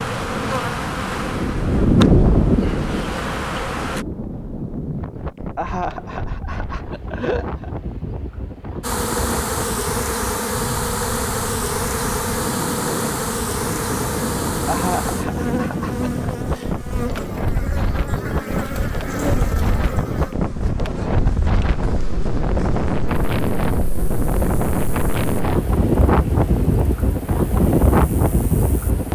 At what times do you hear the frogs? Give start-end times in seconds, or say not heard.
not heard.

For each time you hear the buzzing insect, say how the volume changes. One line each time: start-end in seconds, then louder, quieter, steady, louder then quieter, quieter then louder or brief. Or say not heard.
0.0-4.0 quieter then louder
8.8-29.1 quieter then louder.